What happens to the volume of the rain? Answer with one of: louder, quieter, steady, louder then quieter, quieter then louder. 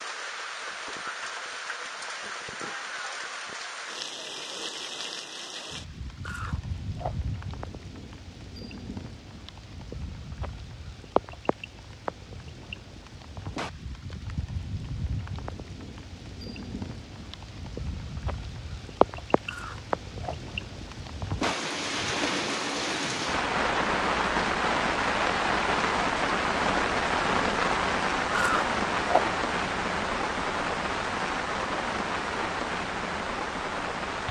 louder.